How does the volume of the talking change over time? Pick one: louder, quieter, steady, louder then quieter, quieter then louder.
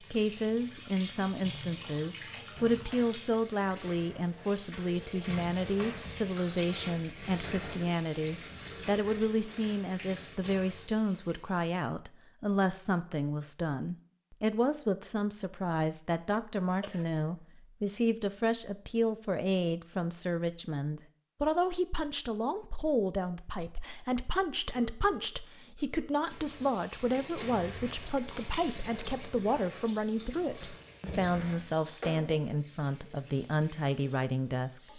steady.